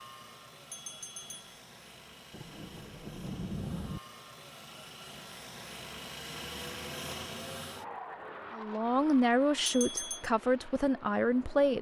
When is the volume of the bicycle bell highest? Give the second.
10 s.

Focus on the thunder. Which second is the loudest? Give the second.
4 s.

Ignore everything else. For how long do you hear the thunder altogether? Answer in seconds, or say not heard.
2 s.